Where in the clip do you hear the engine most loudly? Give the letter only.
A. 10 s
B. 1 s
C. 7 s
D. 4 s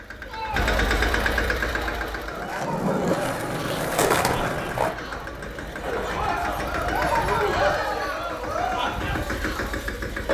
B.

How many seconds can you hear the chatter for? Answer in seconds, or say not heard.
10 s.